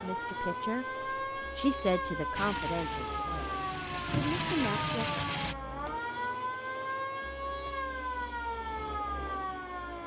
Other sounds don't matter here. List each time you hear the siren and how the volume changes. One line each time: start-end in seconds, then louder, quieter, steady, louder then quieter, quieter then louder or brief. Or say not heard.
0.0-10.0 steady.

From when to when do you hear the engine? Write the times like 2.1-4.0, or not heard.
2.4-5.5.